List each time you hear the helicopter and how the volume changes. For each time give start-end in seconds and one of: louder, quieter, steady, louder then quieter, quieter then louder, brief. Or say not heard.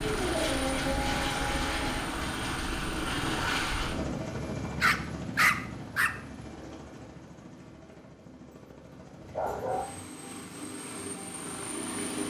0.0-12.2 quieter then louder.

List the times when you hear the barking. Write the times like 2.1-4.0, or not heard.
0.0-2.0, 4.8-6.1, 9.2-10.1.